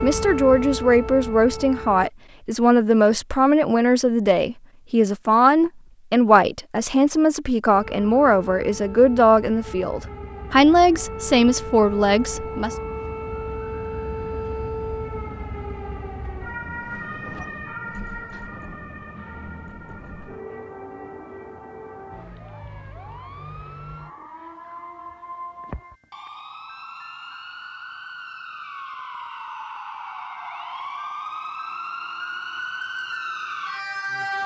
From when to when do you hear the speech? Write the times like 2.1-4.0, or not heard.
0.0-12.8.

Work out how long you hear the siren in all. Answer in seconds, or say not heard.
29 s.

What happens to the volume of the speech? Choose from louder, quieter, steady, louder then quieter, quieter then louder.
steady.